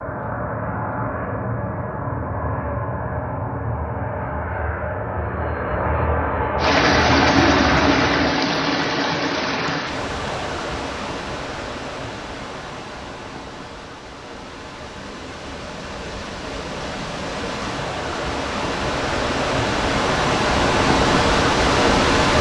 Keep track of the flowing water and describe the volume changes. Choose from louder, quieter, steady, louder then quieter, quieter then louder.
quieter then louder.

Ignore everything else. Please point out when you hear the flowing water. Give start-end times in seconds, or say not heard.
6.5-22.3.